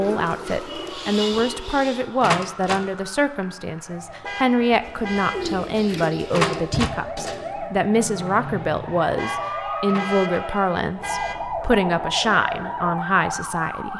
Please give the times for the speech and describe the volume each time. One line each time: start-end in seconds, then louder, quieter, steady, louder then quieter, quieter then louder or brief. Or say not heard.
0.0-13.9 steady.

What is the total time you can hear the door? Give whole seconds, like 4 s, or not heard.
2 s.